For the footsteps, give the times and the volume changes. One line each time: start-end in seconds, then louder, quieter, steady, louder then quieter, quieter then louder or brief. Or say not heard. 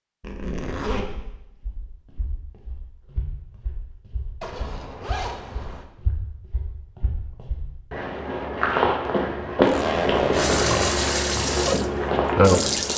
1.4-12.9 louder.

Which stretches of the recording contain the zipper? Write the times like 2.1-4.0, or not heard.
0.2-1.2, 4.4-5.8, 9.6-10.9.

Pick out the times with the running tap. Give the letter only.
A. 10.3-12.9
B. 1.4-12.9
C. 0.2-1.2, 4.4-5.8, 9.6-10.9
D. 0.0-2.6
A.